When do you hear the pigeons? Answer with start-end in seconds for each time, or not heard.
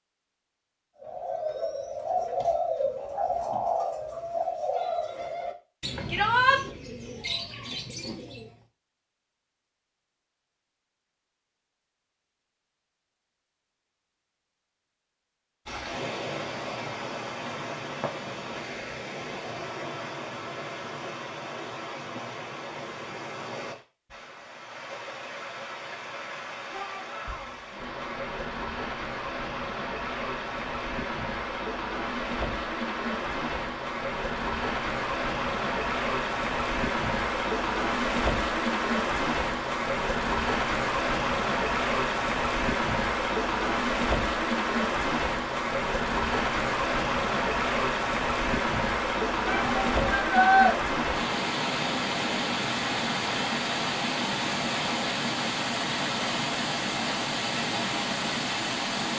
1.0-8.6.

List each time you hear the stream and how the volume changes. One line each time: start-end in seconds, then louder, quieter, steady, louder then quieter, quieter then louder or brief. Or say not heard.
15.7-59.1 louder.